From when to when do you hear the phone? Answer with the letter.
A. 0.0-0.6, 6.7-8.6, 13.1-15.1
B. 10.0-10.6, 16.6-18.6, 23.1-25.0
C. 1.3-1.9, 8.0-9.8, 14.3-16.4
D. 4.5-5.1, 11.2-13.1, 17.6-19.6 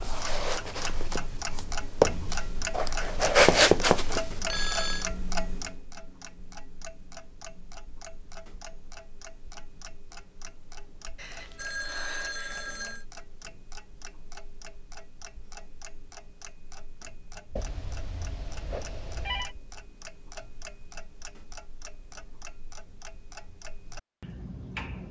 D.